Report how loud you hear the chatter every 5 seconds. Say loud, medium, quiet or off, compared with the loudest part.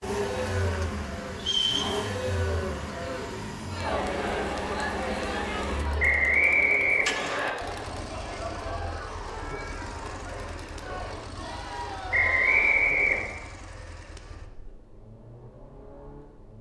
loud, loud, medium, off.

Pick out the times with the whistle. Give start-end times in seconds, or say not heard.
1.4-1.9, 6.0-7.5, 12.1-13.2.